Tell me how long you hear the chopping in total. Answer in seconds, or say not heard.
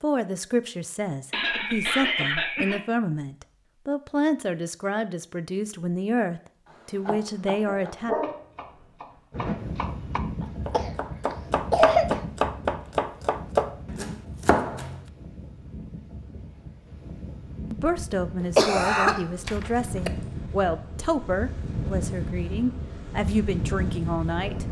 8 s.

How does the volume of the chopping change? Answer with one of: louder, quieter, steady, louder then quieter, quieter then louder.
louder.